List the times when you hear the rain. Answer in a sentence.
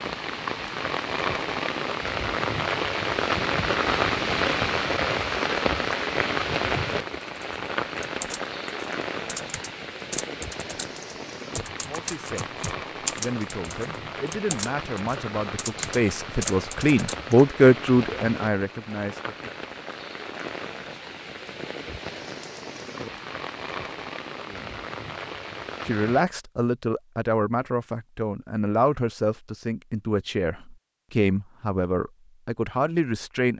You can hear the rain from 0.0 to 26.2 s.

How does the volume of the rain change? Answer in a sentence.
The volume of the rain goes down.